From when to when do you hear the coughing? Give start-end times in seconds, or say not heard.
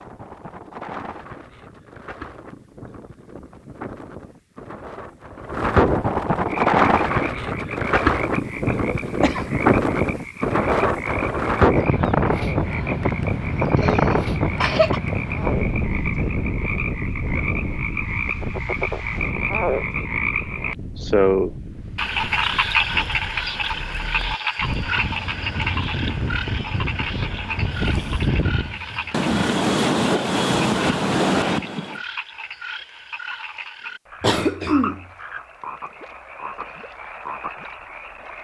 8.8-9.8, 13.8-15.0, 34.2-35.0.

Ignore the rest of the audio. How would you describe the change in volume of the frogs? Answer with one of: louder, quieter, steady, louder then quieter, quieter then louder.
louder then quieter.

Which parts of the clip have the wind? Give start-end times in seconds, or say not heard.
0.0-32.0.